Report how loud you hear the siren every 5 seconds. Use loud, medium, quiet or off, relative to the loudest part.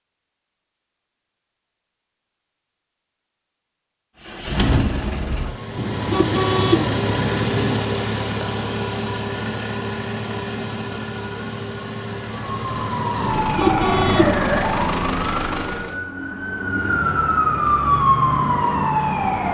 off, off, loud, loud.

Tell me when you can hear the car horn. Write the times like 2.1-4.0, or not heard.
5.8-7.8, 13.2-14.6.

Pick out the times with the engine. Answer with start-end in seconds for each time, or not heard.
4.2-16.0.